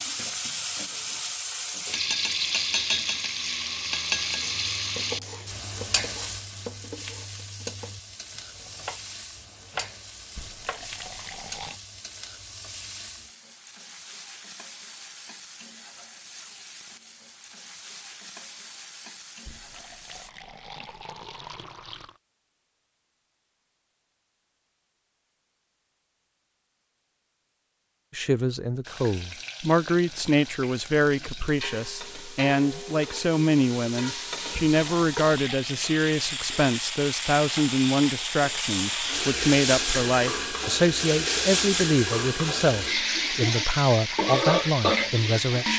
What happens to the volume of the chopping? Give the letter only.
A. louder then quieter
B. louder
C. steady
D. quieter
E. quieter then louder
B.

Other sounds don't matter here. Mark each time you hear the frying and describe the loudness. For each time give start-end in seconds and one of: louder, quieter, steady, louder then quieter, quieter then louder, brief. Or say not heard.
0.0-20.3 quieter
28.8-45.7 louder.